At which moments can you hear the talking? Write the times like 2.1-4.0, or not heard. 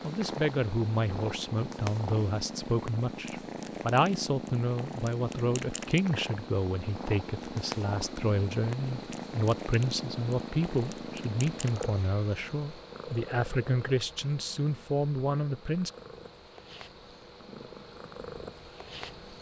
0.0-15.9.